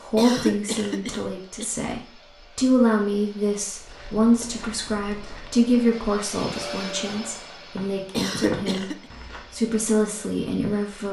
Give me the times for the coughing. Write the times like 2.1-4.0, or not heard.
0.1-1.6, 8.1-9.1.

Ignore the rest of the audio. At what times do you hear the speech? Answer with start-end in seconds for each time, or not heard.
0.0-11.0.